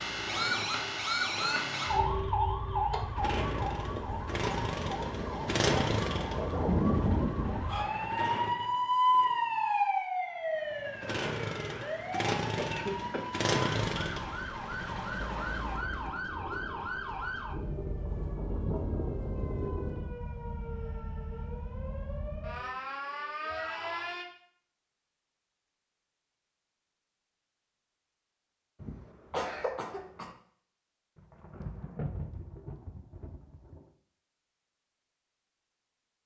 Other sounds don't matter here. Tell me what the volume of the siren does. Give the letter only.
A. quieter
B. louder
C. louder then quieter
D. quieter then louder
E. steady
A.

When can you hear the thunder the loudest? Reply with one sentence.
The volume of the thunder peaks at 7 seconds.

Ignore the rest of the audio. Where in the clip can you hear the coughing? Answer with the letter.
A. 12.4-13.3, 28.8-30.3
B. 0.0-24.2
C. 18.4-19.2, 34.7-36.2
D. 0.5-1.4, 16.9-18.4
A.